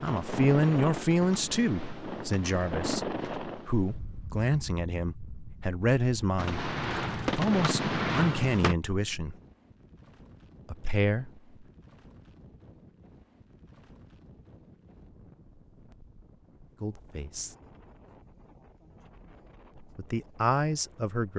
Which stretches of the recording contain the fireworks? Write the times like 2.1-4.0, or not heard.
0.0-3.4, 6.3-8.8.